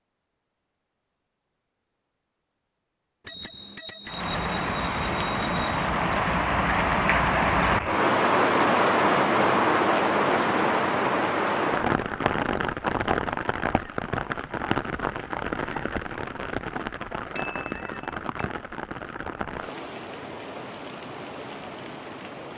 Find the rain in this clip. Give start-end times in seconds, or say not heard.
4.0-22.5.